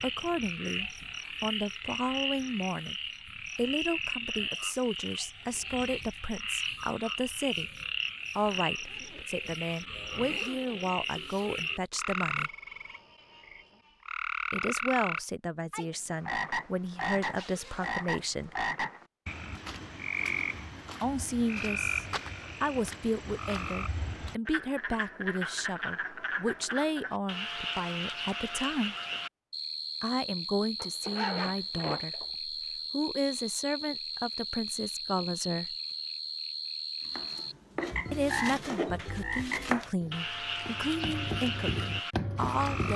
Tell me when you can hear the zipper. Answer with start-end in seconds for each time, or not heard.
8.7-10.9, 17.1-18.6, 30.8-32.2.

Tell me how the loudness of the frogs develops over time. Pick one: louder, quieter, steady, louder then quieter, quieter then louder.
steady.